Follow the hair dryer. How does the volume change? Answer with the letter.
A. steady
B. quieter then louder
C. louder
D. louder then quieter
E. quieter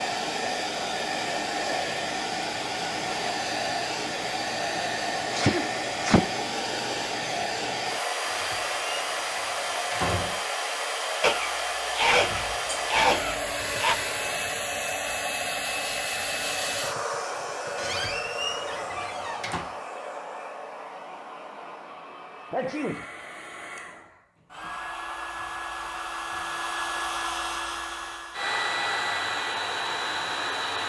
B.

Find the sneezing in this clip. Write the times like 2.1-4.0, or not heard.
5.3-6.2, 11.2-13.9, 22.5-23.1.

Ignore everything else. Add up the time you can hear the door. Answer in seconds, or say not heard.
4 s.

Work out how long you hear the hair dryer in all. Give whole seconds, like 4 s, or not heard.
31 s.